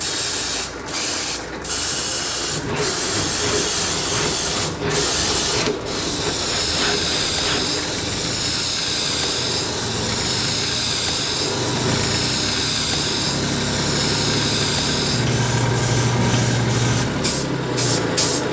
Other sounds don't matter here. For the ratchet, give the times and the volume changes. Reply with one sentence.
You can't hear the ratchet here.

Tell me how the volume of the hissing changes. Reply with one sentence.
The volume of the hissing stays about the same.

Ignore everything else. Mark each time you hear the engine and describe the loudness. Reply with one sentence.
You can hear the engine from 0.0 to 18.4 s, getting louder.